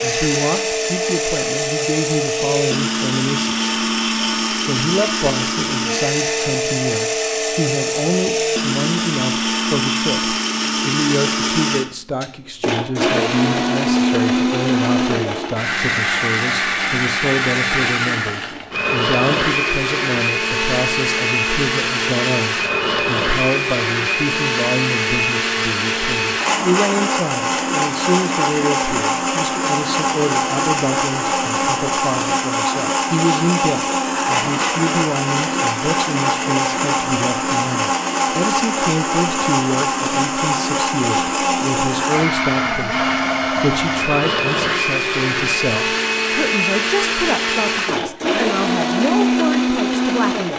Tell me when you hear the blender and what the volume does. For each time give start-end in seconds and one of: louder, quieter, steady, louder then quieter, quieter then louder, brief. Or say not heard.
0.0-50.5 steady.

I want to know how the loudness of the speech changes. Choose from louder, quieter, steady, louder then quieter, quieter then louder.
steady.